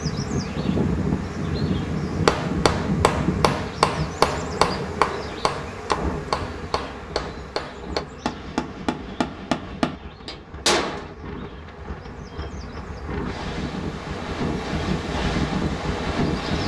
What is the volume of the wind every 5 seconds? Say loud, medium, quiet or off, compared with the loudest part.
loud, quiet, medium, loud.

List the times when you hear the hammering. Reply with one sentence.
The hammering can be heard from 2.2 to 11.2 s.